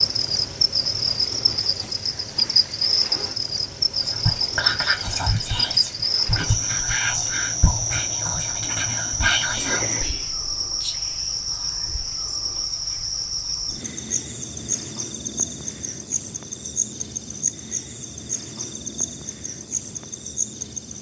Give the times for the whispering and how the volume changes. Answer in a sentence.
The whispering can be heard from 4.0 to 13.1 s, getting quieter.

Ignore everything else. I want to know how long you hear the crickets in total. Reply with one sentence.
The crickets can be heard for 21 seconds in total.